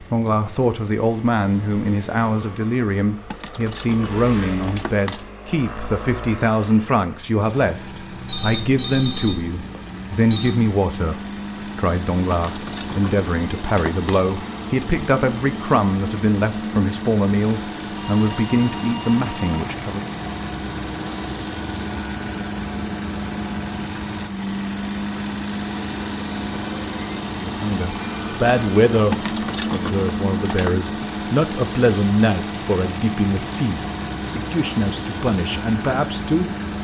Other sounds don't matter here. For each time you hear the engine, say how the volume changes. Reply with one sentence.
You can hear the engine from 0.0 to 36.7 s, getting louder.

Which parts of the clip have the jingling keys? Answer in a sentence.
You can hear the jingling keys from 3.3 to 5.3 s, from 12.3 to 14.3 s and from 29.1 to 30.7 s.